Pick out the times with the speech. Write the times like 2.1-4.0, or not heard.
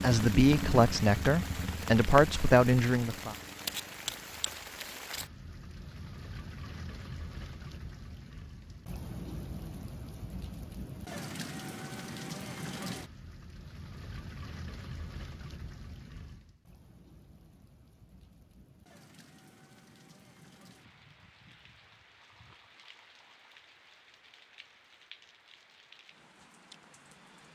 0.0-3.4.